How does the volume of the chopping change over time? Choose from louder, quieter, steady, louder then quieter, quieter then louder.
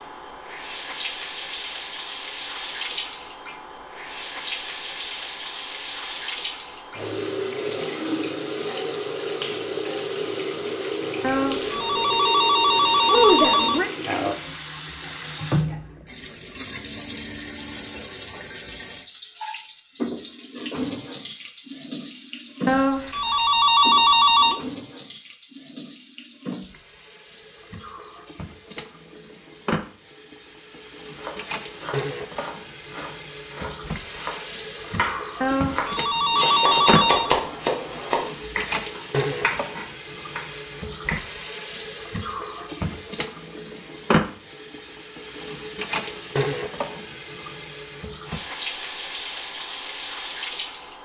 louder then quieter.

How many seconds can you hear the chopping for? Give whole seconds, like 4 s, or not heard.
10 s.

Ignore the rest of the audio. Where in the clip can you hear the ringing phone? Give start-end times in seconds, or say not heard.
11.2-13.9, 22.6-24.6, 35.4-37.4.